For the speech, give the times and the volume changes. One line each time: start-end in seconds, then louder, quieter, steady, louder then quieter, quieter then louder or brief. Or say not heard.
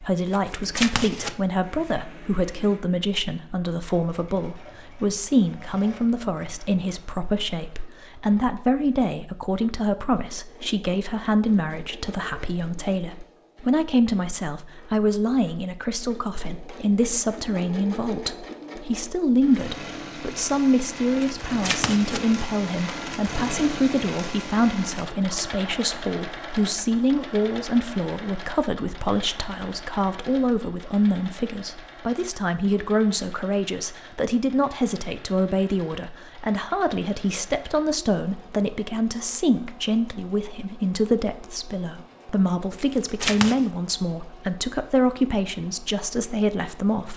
0.0-47.1 steady.